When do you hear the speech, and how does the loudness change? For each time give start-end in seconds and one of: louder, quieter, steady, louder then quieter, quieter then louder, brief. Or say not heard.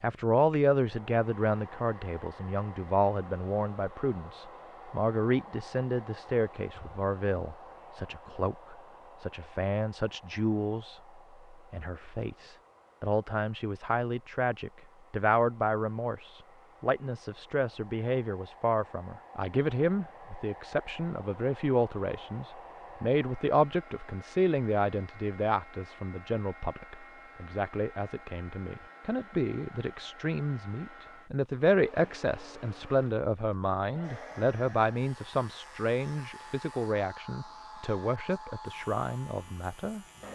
0.0-40.3 steady.